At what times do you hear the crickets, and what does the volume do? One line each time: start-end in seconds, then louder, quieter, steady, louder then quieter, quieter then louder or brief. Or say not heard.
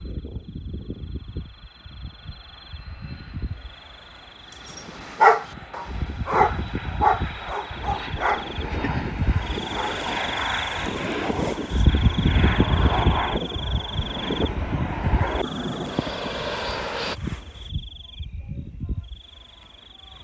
0.0-20.1 louder then quieter.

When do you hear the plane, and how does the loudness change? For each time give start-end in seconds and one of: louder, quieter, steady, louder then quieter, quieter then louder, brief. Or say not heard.
0.0-17.1 louder.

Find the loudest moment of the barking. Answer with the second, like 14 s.
5 s.